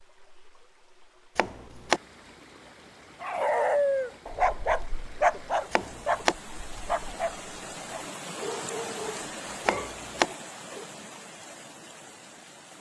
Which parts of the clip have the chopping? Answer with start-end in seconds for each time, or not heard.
1.4-2.0, 5.7-6.3, 9.7-10.2.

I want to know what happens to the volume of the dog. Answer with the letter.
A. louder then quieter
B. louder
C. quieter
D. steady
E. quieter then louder
C.